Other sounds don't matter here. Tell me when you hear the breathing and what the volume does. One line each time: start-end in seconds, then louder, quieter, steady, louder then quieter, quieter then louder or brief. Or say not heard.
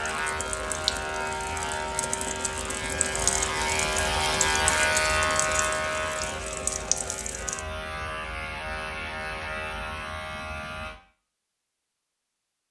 not heard.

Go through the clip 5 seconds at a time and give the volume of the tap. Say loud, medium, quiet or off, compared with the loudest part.
loud, loud, off.